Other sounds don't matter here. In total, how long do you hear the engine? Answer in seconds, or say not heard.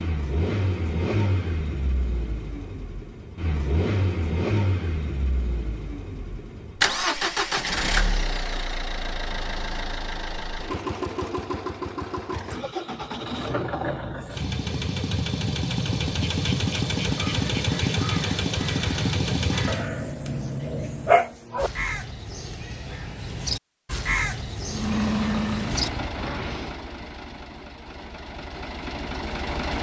25 s.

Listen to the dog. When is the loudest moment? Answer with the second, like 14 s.
21 s.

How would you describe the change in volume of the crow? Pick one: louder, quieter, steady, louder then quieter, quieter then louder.
louder.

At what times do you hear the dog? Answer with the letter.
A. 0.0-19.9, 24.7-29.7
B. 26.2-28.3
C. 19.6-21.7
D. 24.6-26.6
C.